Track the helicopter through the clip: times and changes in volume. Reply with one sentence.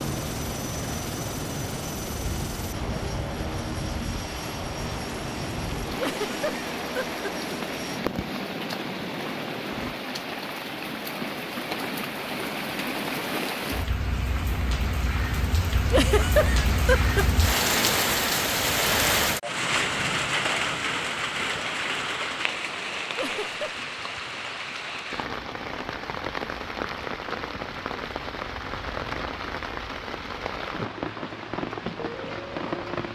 You can hear the helicopter from 0.0 to 9.9 s, at a steady volume.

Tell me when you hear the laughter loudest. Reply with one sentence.
The volume of the laughter peaks at 16 seconds.